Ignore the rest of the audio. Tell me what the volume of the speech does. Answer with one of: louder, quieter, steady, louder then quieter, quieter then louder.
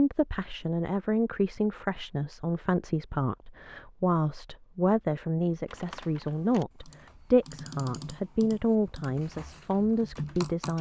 steady.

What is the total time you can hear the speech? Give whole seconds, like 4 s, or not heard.
11 s.